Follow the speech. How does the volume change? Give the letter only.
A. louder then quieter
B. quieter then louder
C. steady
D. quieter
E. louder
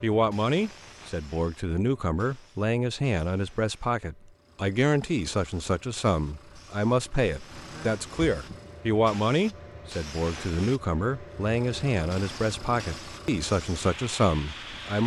C.